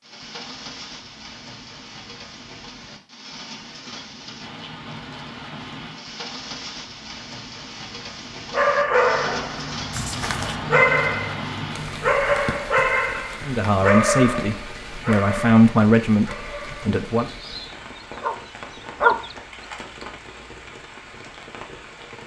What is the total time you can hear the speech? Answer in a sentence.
You can hear the speech for 4 seconds altogether.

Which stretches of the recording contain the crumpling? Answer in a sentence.
The crumpling can be heard from 9.9 to 10.6 s.